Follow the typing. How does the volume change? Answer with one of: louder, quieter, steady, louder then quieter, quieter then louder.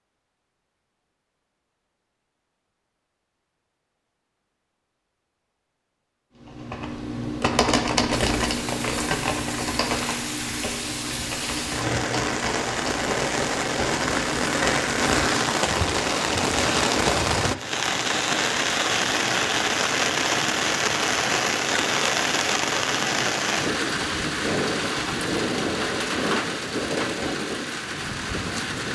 quieter.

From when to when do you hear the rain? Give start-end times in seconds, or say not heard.
8.2-28.9.